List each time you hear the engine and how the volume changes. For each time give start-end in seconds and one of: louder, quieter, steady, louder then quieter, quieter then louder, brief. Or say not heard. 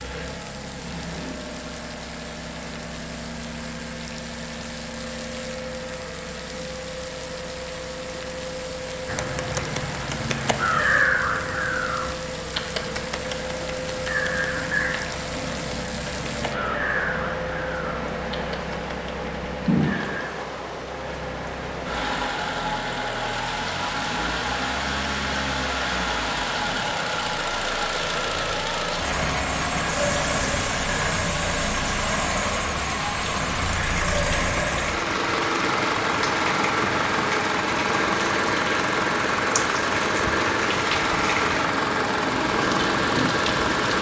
0.0-43.9 louder.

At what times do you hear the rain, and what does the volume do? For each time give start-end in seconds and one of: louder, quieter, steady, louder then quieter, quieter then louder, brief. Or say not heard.
0.0-43.9 louder.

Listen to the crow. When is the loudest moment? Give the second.
11 s.